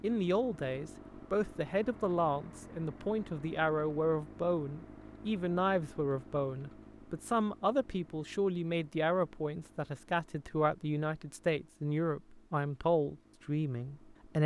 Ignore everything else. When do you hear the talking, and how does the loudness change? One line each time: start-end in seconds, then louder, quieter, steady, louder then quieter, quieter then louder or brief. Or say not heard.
0.0-14.4 steady.